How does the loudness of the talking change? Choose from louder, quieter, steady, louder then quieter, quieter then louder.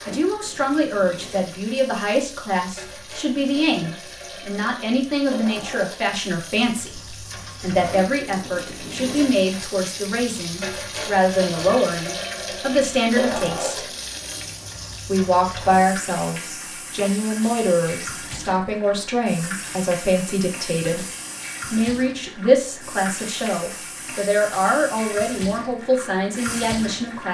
steady.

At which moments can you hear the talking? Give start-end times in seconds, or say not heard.
0.1-13.9, 15.1-21.1, 21.7-27.2.